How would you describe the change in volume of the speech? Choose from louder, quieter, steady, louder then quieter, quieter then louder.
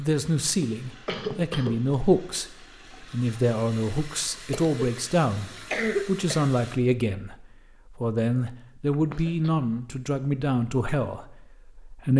steady.